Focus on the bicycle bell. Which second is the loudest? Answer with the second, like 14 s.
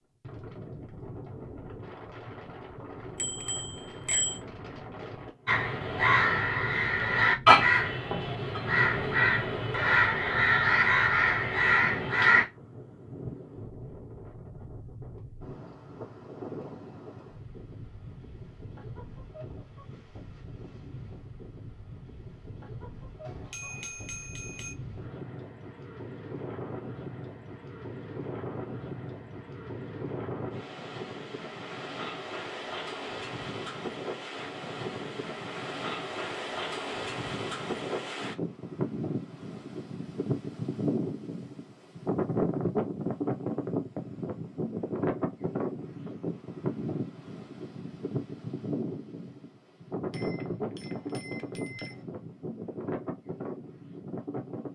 4 s.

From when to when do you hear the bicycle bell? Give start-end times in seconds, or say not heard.
3.1-4.4, 23.2-24.8, 50.1-52.0.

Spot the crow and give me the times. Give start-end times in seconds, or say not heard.
5.5-12.4.